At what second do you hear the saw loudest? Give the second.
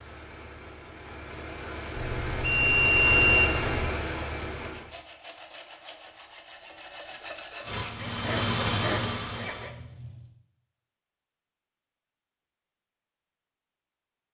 9 s.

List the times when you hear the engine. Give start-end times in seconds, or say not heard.
0.0-4.9, 7.7-10.3.